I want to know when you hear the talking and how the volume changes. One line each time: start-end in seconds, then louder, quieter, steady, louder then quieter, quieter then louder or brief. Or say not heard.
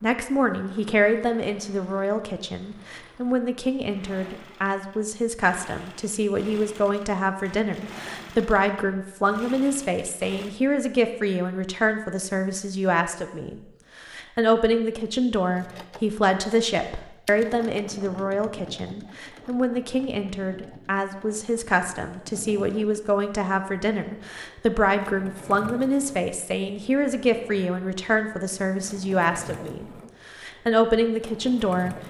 0.0-31.9 steady.